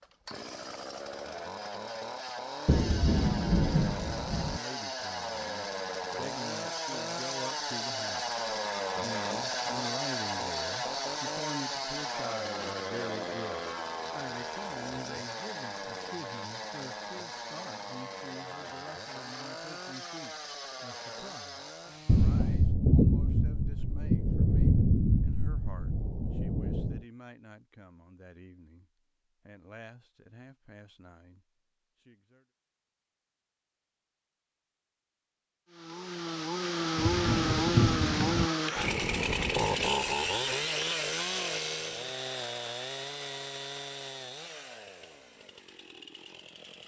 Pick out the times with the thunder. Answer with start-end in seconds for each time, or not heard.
2.6-4.6, 22.1-27.0, 37.0-38.5.